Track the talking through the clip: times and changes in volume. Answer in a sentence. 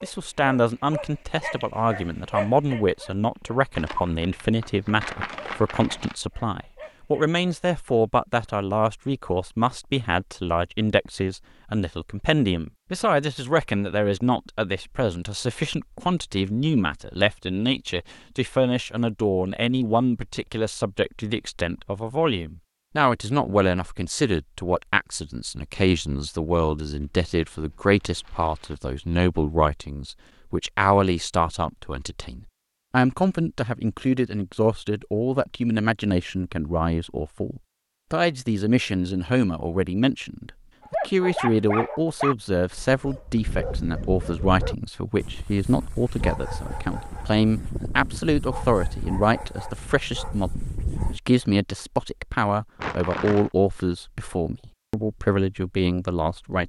The talking can be heard from 0.0 to 56.6 s, at a steady volume.